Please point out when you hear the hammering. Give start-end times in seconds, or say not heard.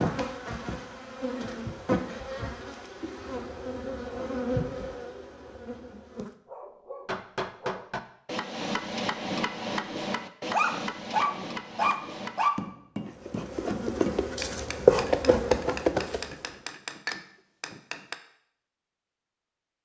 7.0-18.1.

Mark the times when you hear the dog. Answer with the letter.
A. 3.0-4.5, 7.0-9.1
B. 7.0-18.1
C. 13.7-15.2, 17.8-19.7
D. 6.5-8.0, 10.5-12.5
D.